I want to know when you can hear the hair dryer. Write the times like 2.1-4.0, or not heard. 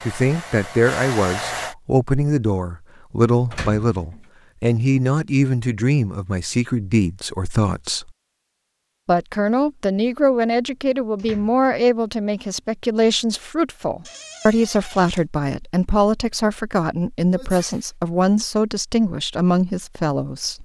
0.0-1.8.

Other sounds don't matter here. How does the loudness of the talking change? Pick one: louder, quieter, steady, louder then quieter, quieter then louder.
steady.